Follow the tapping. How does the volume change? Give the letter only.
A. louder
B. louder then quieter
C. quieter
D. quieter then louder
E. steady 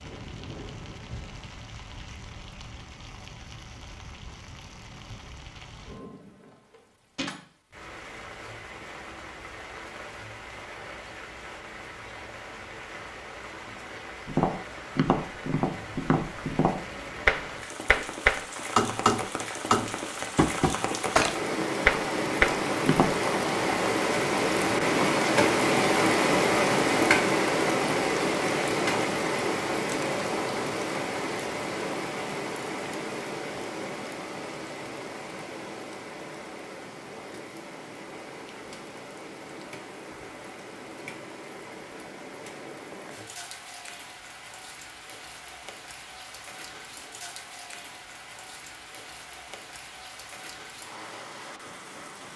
A.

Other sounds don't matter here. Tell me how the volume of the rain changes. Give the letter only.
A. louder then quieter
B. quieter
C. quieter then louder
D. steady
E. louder
A.